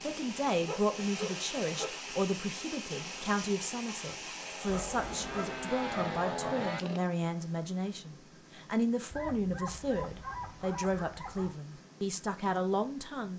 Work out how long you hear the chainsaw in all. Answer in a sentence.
The chainsaw can be heard for 7 seconds in total.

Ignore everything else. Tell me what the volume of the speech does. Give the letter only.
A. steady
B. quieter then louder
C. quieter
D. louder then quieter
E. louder
A.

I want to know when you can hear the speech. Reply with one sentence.
The speech can be heard from 0.0 to 13.3 s.